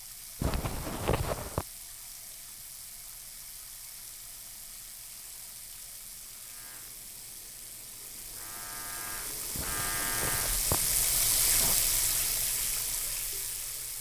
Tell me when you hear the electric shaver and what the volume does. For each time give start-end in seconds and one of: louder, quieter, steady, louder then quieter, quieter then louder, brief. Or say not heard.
6.4-10.7 louder.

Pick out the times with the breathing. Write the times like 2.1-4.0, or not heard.
not heard.